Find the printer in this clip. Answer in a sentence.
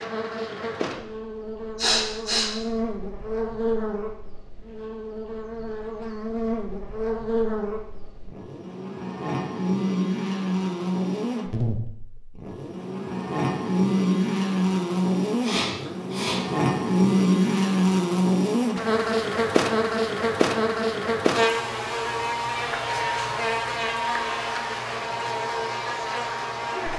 You can't hear the printer here.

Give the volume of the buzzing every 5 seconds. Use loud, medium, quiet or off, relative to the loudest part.
medium, medium, loud, loud, loud, medium.